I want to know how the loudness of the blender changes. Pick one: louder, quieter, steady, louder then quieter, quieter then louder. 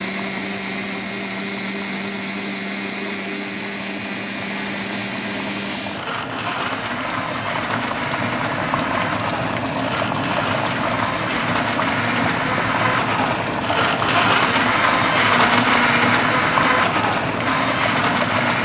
louder.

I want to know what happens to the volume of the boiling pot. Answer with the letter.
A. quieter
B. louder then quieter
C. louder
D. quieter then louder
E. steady
C.